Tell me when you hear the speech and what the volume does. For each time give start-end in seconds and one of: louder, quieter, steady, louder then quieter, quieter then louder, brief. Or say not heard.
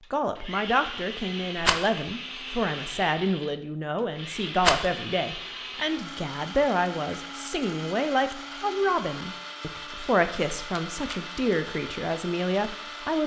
0.1-13.2 steady.